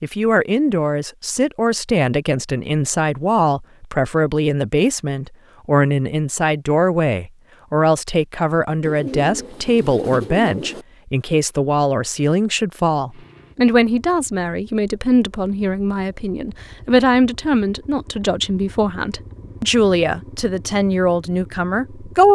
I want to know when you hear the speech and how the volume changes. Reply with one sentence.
You can hear the speech from 0.0 to 22.2 s, at a steady volume.